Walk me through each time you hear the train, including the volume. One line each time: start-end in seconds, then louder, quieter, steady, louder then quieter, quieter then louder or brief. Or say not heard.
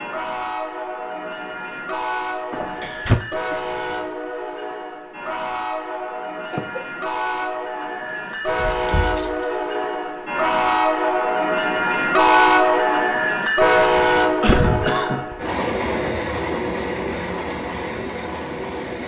0.0-19.0 louder then quieter.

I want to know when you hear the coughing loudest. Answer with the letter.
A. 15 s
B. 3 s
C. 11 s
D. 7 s
A.